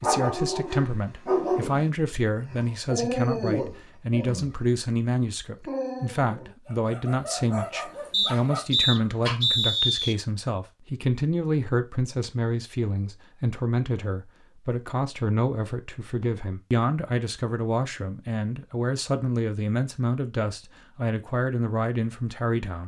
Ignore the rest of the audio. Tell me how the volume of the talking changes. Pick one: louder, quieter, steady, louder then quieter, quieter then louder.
steady.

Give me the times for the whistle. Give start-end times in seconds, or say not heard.
8.1-10.2.